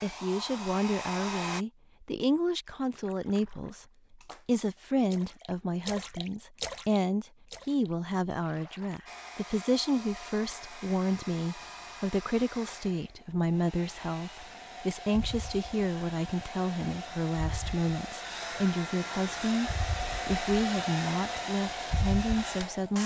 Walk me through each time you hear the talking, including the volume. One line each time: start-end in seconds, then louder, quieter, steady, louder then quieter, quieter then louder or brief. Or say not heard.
0.0-23.0 steady.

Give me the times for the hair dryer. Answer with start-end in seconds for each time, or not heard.
0.0-1.6, 9.1-23.0.